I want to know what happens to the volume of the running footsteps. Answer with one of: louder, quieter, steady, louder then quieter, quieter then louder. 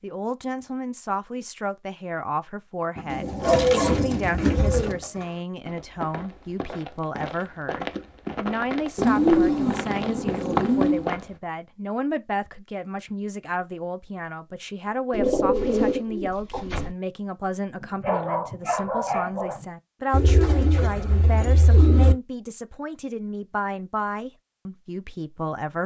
louder.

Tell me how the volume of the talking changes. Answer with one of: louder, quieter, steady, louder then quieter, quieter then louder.
steady.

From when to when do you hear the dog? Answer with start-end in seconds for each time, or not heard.
3.0-5.4, 17.8-19.6.